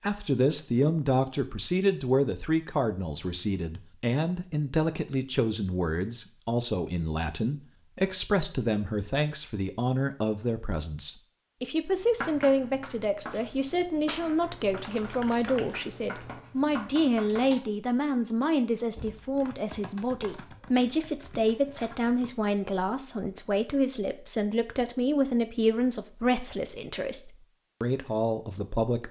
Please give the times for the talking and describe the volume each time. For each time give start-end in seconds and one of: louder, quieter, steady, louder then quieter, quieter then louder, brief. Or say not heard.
0.0-29.0 steady.